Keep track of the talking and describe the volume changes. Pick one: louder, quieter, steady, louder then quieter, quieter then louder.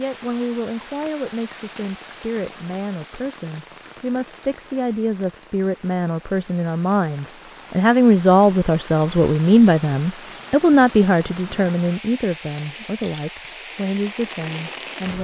louder then quieter.